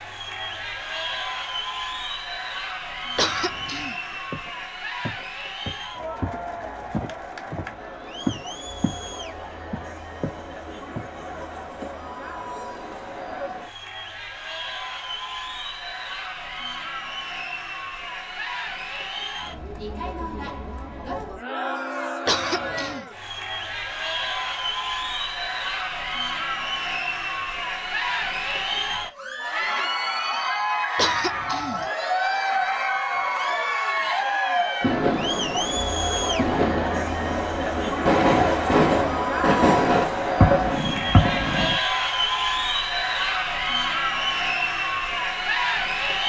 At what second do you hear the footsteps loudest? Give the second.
8 s.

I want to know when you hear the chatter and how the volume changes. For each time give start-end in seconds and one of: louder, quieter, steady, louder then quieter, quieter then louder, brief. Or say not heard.
0.0-46.2 louder.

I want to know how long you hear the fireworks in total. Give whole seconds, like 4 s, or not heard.
7 s.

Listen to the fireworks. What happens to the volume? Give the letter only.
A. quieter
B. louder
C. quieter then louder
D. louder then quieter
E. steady
B.